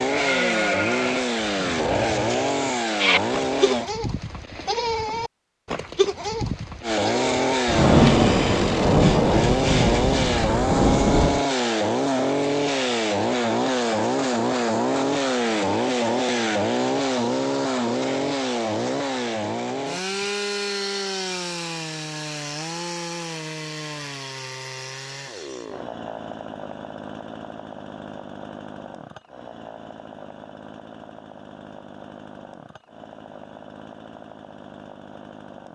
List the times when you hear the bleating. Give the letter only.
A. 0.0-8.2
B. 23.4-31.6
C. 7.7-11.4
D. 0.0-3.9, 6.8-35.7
A.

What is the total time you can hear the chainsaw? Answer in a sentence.
You can hear the chainsaw for 33 seconds altogether.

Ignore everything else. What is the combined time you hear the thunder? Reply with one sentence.
The thunder can be heard for 4 seconds in total.